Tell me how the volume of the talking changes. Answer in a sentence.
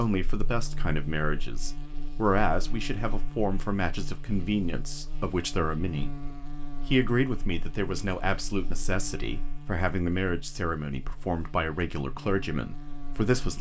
The volume of the talking stays about the same.